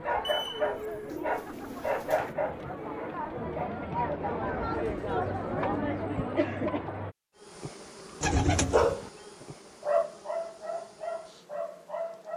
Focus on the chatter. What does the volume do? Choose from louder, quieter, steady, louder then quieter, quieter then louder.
louder.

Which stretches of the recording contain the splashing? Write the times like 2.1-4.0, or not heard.
not heard.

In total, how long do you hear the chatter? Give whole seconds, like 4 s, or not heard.
7 s.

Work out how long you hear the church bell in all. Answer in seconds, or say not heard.
not heard.